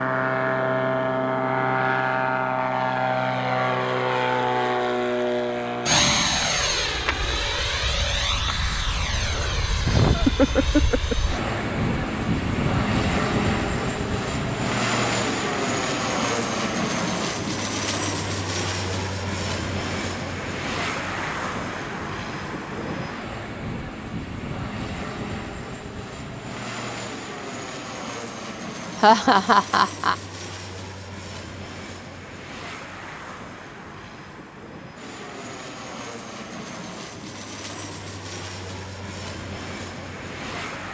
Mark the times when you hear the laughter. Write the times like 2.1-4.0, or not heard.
9.8-11.4, 29.0-30.1.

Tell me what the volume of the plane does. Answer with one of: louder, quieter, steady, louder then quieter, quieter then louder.
quieter.